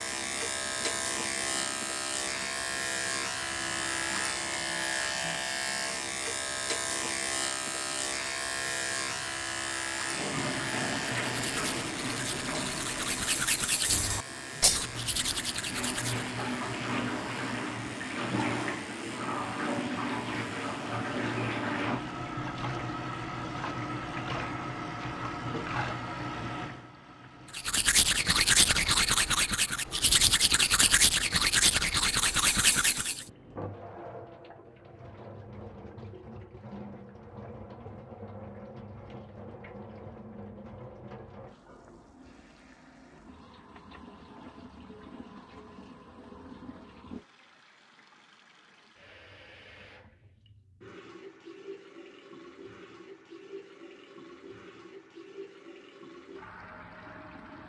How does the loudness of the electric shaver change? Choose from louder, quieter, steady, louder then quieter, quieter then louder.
quieter.